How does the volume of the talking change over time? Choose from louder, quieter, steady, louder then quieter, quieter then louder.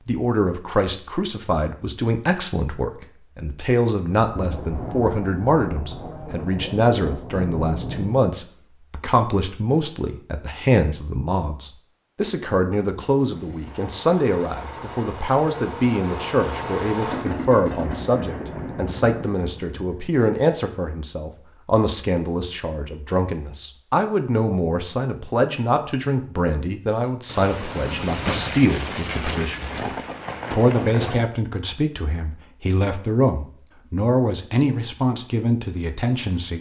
steady.